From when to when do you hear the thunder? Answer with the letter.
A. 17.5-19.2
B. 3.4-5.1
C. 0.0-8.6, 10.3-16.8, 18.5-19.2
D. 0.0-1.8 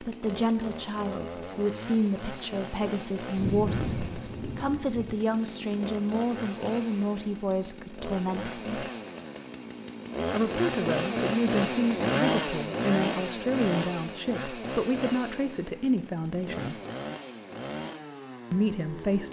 B.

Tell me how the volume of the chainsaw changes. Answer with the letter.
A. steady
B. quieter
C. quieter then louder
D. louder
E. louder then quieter
E.